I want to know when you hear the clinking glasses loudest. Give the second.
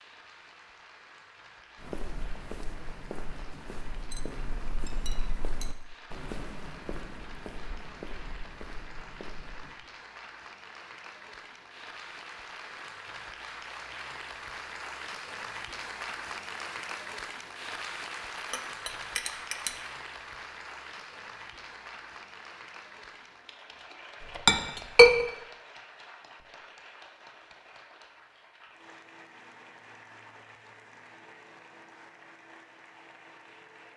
25 s.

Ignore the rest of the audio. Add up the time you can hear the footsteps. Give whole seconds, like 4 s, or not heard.
8 s.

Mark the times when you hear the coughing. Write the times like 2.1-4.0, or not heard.
not heard.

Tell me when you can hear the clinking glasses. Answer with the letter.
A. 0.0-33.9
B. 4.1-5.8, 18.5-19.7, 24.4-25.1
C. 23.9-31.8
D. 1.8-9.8
B.